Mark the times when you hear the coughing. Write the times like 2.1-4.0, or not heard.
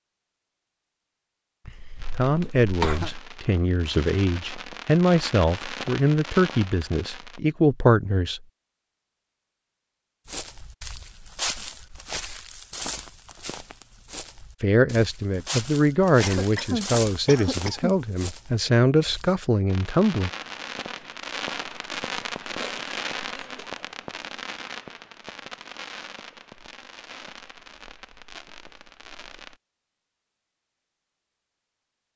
1.6-3.2, 16.2-17.9, 22.6-23.8.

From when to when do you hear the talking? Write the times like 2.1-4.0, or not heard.
2.1-8.4, 14.6-20.3.